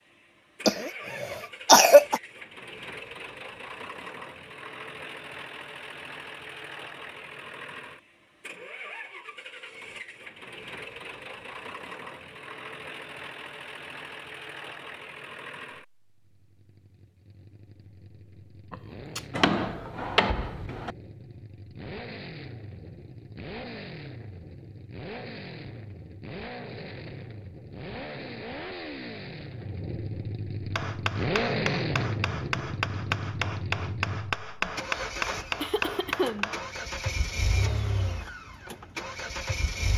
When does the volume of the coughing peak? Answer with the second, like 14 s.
2 s.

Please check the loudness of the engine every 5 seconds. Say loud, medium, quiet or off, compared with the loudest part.
medium, medium, medium, quiet, medium, medium, loud, loud.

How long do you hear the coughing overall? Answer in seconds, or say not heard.
4 s.